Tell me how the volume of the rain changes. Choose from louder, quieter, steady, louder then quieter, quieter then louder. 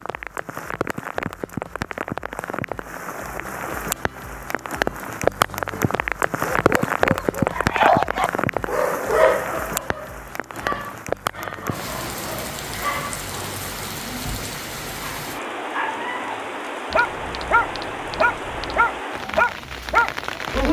louder then quieter.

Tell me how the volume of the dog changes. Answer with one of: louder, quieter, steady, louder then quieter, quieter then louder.
quieter then louder.